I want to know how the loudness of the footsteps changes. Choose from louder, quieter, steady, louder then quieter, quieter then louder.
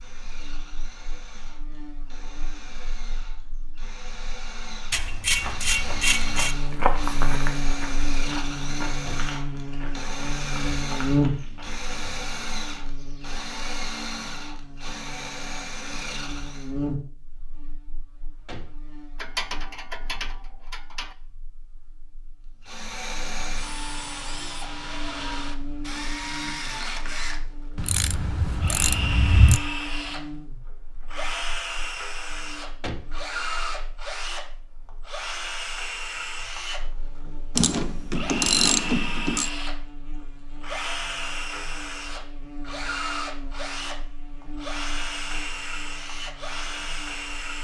quieter.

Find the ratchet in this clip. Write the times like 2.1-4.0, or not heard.
4.9-6.5, 19.1-21.1, 27.8-29.6, 37.5-39.5.